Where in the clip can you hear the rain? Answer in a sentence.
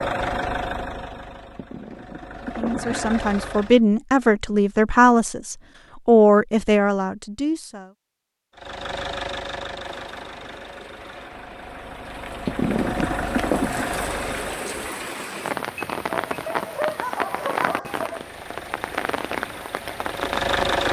The rain can be heard from 9.8 to 20.8 s.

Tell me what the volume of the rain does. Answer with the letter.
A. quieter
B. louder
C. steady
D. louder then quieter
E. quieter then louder
B.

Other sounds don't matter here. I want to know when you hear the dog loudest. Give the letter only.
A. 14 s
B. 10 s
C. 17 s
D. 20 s
C.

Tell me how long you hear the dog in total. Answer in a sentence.
You can hear the dog for 2 seconds altogether.